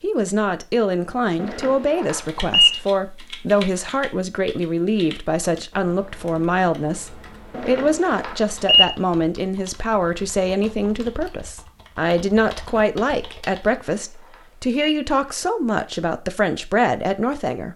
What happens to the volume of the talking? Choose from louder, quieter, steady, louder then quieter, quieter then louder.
steady.